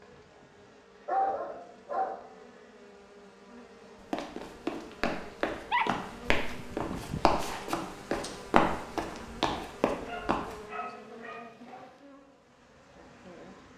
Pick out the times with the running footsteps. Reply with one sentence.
The running footsteps can be heard from 4.1 to 10.6 s.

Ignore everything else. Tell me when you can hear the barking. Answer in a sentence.
You can hear the barking from 1.1 to 2.4 s, from 5.5 to 7.5 s and from 9.5 to 11.9 s.